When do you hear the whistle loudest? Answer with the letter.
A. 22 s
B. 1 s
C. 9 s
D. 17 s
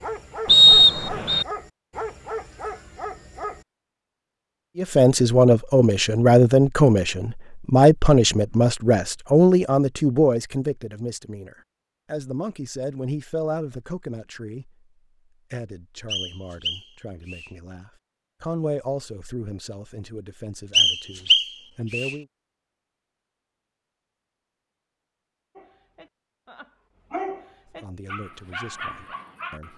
B.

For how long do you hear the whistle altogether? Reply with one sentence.
You can hear the whistle for 4 seconds altogether.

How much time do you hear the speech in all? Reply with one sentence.
You can hear the speech for 19 seconds altogether.